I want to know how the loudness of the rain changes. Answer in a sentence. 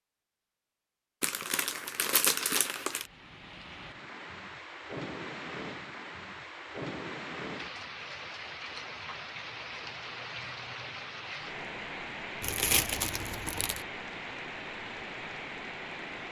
The loudness of the rain stays about the same.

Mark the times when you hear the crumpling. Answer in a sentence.
The crumpling can be heard from 1.2 to 3.0 s and from 12.4 to 13.8 s.